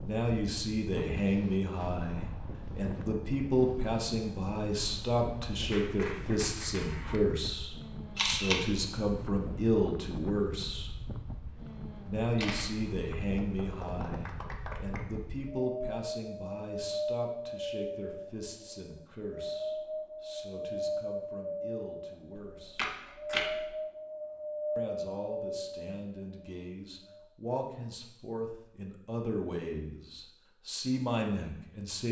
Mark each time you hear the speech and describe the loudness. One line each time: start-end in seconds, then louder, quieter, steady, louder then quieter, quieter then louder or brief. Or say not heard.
0.0-10.9 steady
12.1-22.9 quieter
24.8-32.0 louder.